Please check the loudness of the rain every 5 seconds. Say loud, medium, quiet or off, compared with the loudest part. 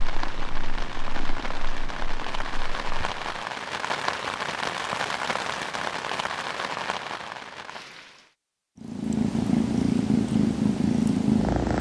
loud, loud, off.